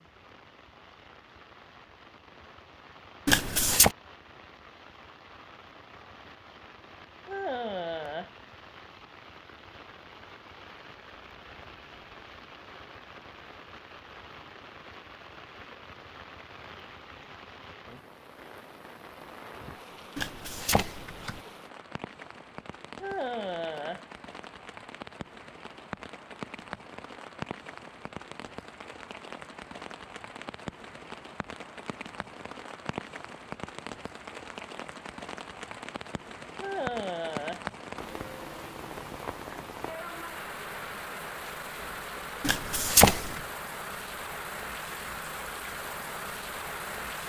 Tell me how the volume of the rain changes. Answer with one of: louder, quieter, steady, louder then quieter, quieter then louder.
louder.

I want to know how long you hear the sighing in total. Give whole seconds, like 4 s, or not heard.
3 s.